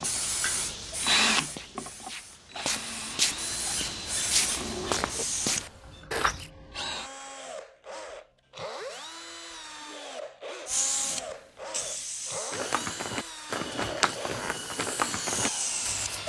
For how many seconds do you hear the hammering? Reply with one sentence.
You can't hear the hammering here.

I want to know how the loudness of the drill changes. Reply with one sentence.
The loudness of the drill goes down.